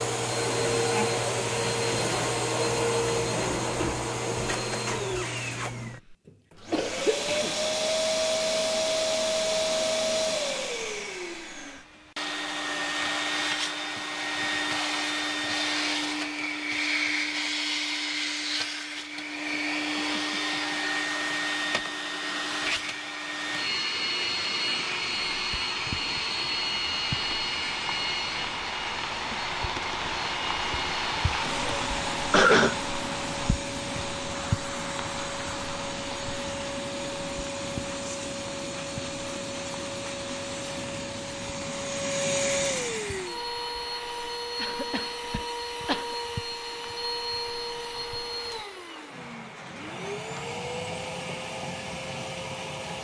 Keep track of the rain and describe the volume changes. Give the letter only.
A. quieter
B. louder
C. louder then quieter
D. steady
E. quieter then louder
A.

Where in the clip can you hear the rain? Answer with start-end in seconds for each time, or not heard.
24.1-52.9.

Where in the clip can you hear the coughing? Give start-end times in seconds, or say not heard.
6.7-7.5, 32.3-32.8, 44.6-46.1.